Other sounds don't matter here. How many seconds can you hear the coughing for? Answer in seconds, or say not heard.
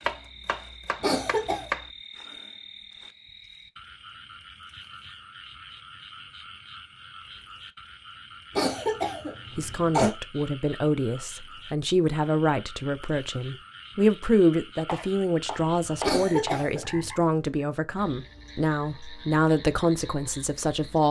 3 s.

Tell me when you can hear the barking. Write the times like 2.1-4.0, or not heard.
not heard.